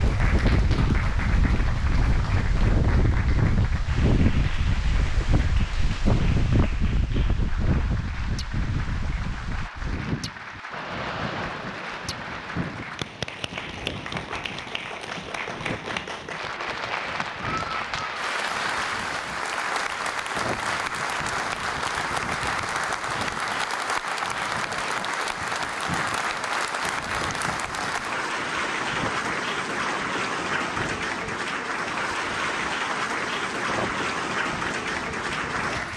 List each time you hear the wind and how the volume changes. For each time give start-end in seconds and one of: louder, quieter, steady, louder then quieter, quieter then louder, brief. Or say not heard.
0.0-35.9 quieter.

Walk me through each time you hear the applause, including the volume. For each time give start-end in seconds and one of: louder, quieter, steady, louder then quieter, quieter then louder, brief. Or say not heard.
0.0-35.9 louder.